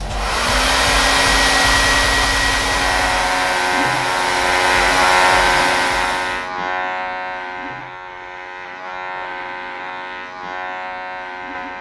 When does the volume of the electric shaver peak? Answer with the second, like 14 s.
5 s.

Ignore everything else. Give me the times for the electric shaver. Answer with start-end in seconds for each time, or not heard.
2.4-11.7.